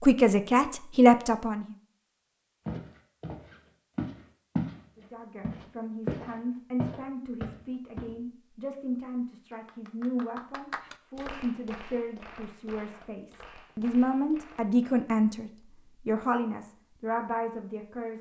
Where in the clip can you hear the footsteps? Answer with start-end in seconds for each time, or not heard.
2.6-4.8, 5.4-8.1.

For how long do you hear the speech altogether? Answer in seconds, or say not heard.
15 s.